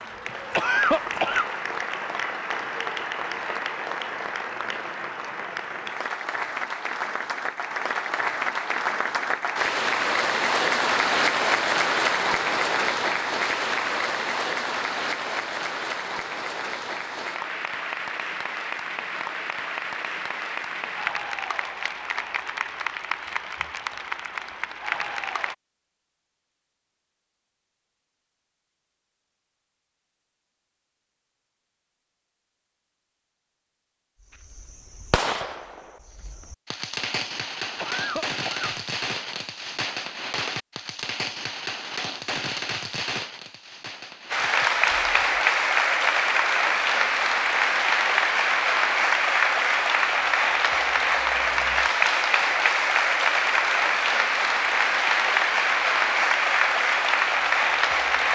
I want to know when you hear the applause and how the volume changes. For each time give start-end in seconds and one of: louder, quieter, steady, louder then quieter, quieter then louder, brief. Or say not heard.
0.0-25.6 louder then quieter
44.3-58.3 steady.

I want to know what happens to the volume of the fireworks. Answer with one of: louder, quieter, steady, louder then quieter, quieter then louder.
steady.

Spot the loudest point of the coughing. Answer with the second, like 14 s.
1 s.